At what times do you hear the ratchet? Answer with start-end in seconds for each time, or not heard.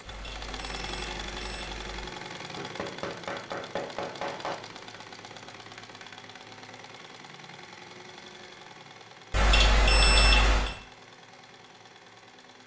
not heard.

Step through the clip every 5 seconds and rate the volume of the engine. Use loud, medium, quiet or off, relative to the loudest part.
loud, medium, medium.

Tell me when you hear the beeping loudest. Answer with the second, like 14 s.
10 s.